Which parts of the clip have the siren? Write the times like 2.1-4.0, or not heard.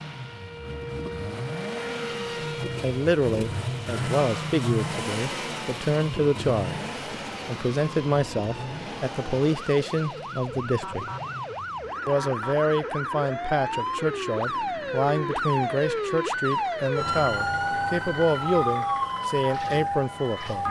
0.0-20.6.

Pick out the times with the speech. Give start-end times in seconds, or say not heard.
2.8-11.1, 12.1-20.6.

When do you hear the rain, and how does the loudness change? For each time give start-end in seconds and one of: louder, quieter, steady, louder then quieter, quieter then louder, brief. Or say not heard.
not heard.